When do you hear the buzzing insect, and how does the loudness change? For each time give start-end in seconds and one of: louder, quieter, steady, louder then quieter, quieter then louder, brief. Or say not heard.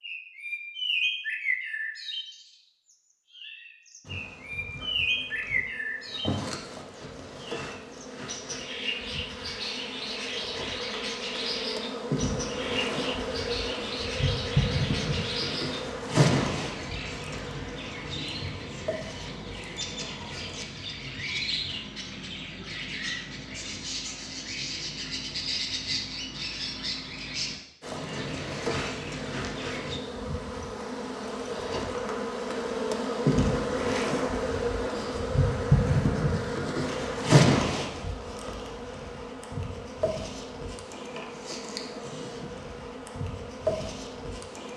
4.0-20.6 louder then quieter
27.8-44.7 louder then quieter.